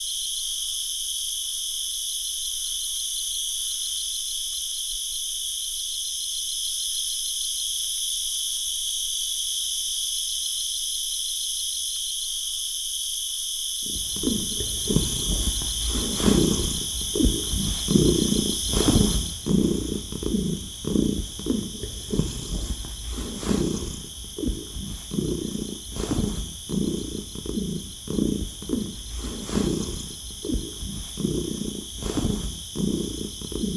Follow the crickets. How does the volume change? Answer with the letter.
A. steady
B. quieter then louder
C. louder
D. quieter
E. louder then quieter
D.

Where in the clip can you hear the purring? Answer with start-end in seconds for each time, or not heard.
13.8-33.7.